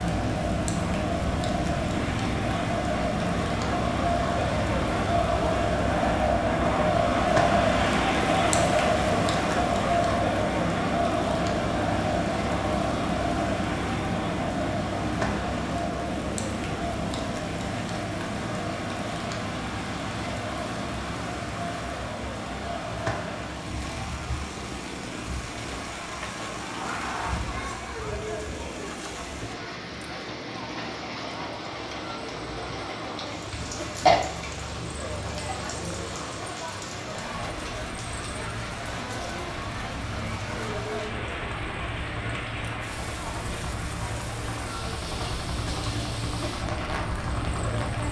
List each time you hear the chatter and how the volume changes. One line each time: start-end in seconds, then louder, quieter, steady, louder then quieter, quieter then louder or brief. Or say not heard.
0.0-48.0 quieter.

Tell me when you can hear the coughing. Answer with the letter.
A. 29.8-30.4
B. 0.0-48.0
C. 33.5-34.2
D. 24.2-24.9
C.